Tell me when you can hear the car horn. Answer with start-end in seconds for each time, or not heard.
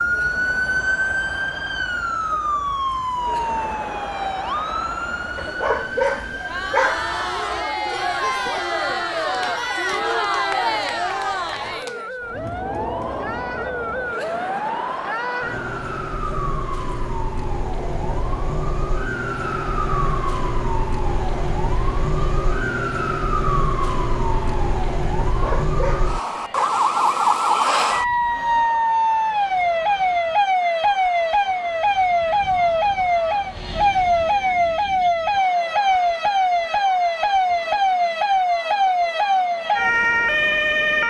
not heard.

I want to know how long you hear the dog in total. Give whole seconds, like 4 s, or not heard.
3 s.